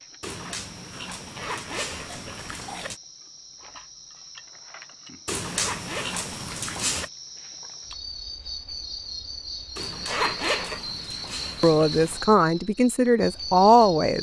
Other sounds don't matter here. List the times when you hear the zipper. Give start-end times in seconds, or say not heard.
1.4-2.9, 5.5-7.0, 10.1-10.9.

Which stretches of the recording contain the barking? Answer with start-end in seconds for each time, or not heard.
0.2-3.0, 5.2-7.1, 9.8-12.2.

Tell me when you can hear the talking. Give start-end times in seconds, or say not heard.
11.6-14.1.